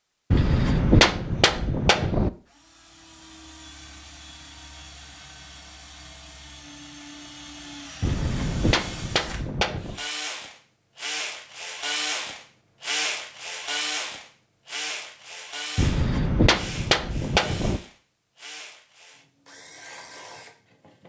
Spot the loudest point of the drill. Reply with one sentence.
The loudest moment of the drill is at 13 seconds.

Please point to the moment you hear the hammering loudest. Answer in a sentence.
The loudest moment of the hammering is at 1 second.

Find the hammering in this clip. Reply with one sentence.
The hammering can be heard from 0.3 to 2.3 s, from 8.0 to 10.0 s and from 15.8 to 17.8 s.